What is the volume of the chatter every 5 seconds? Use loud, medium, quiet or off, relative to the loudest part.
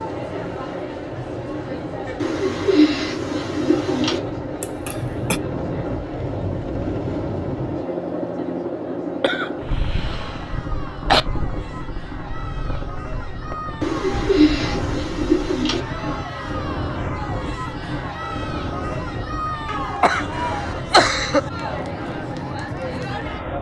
loud, medium, medium, loud, loud.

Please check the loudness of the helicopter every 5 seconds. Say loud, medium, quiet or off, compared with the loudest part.
medium, loud, medium, medium, medium.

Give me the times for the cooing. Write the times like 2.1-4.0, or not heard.
2.1-4.2, 13.8-15.8.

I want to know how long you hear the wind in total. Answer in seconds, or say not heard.
14 s.